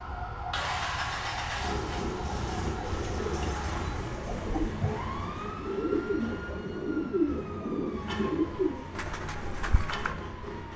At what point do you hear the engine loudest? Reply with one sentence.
The loudest moment of the engine is at 1 second.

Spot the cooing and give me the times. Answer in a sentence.
You can hear the cooing from 2.8 to 10.2 s.